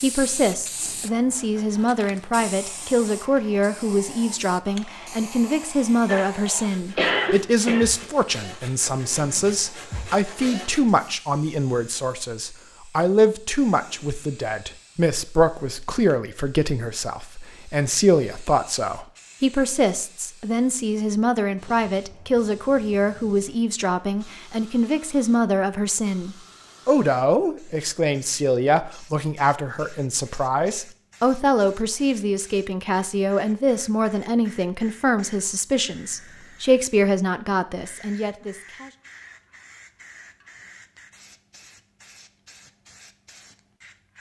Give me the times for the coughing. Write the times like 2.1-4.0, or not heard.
6.0-7.8.